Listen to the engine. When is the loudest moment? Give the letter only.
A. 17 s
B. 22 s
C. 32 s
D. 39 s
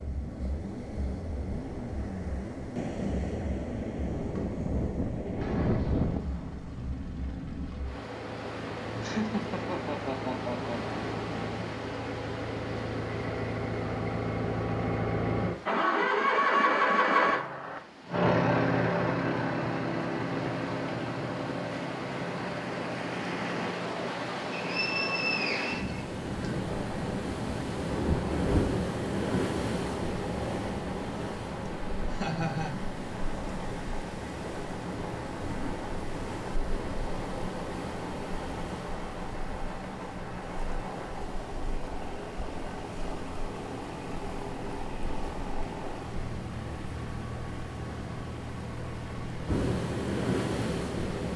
A.